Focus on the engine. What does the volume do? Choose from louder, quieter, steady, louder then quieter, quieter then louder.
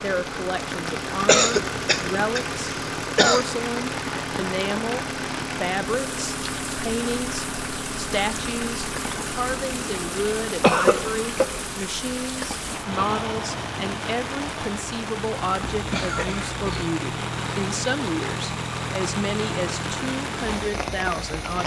steady.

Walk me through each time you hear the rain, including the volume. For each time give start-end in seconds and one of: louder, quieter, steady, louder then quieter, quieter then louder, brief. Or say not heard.
0.0-21.6 steady.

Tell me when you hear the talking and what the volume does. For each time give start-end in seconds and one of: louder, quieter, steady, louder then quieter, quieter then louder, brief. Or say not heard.
0.0-21.6 steady.